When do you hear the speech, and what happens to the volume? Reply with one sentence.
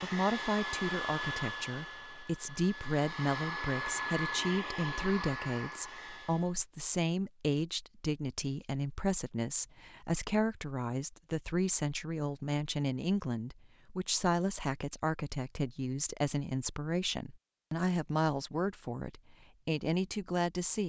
You can hear the speech from 0.0 to 20.8 s, at a steady volume.